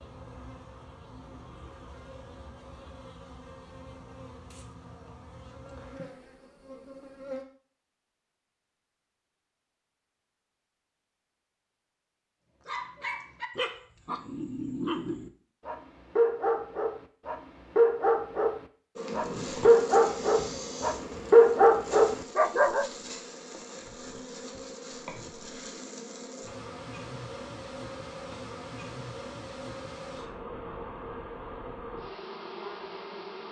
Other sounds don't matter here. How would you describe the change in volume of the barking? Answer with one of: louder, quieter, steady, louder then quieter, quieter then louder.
louder.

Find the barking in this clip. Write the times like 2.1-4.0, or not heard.
12.7-22.9.